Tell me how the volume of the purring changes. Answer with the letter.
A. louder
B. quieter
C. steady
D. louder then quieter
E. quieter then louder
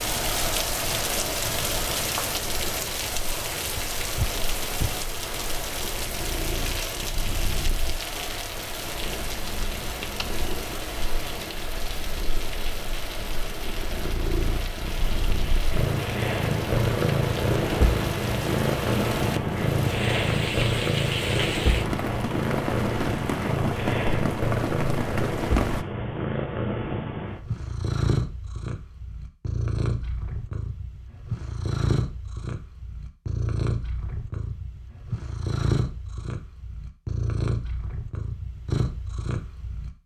D.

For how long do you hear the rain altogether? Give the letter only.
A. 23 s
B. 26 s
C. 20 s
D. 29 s
B.